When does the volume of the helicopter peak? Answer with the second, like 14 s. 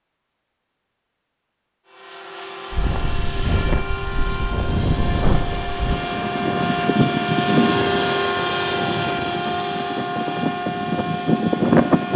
8 s.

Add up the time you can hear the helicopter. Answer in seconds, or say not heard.
10 s.